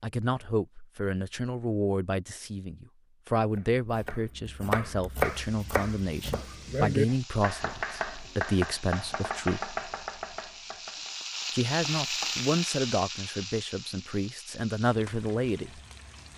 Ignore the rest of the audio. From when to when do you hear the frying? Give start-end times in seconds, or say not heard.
5.2-16.3.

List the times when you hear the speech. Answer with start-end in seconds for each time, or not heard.
0.0-9.6, 11.5-15.8.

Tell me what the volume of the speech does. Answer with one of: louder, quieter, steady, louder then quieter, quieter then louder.
steady.